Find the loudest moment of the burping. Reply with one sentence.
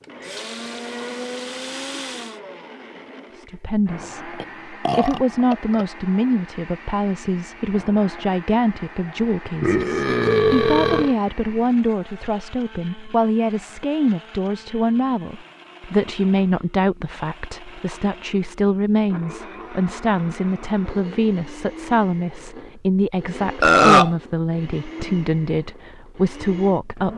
The volume of the burping peaks at 24 seconds.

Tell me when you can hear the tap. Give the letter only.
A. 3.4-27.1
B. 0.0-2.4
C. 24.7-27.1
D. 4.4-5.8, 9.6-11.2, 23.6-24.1
B.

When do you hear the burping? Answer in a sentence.
You can hear the burping from 4.4 to 5.8 s, from 9.6 to 11.2 s and from 23.6 to 24.1 s.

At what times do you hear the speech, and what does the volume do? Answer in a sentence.
The speech can be heard from 3.4 to 27.1 s, at a steady volume.